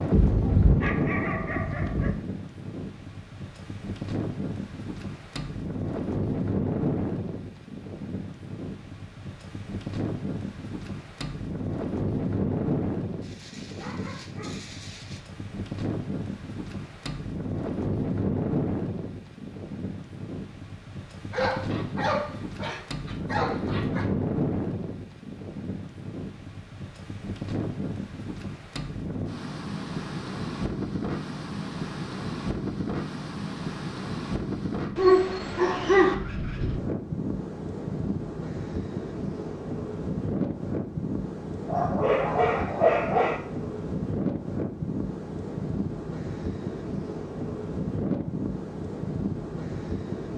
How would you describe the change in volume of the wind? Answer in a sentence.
The loudness of the wind stays about the same.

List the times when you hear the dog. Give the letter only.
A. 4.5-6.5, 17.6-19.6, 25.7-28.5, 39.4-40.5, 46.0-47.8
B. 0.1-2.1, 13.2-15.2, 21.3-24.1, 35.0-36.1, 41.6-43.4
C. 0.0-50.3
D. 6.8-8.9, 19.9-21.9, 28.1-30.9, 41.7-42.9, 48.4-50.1
B.